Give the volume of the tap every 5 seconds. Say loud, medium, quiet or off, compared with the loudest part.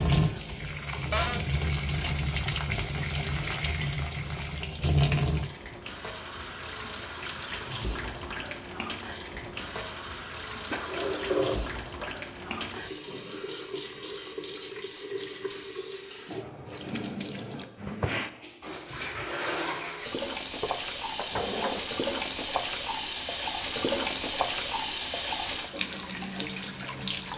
loud, loud, medium, medium, loud, loud.